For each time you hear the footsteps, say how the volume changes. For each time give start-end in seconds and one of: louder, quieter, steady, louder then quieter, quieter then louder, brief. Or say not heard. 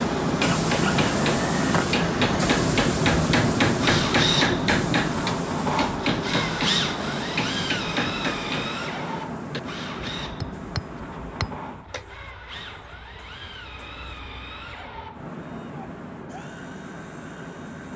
not heard.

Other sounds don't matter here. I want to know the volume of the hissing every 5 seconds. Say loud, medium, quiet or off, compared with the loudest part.
loud, medium, quiet, quiet.